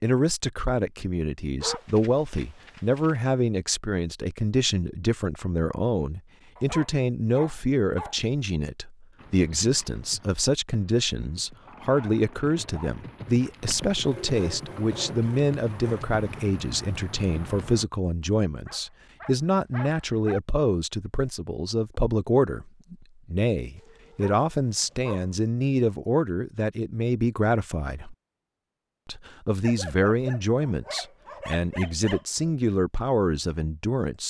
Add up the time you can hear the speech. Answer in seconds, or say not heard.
33 s.